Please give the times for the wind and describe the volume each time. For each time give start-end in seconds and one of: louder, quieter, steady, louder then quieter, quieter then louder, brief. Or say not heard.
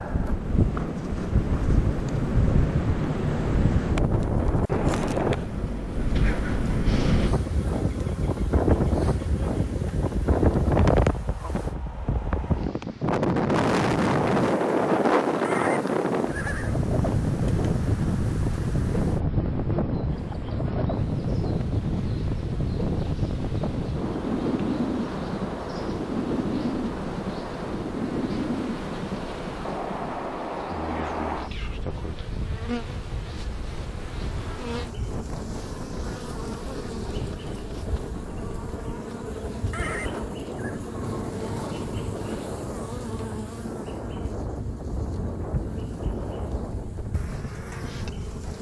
0.0-48.5 quieter.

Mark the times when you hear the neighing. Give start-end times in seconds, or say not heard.
15.4-16.8, 39.7-40.8.